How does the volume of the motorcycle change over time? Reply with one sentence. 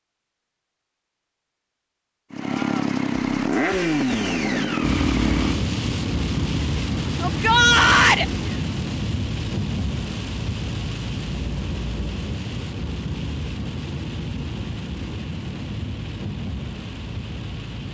The loudness of the motorcycle goes down.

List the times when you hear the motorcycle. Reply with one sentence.
The motorcycle can be heard from 2.3 to 8.8 s.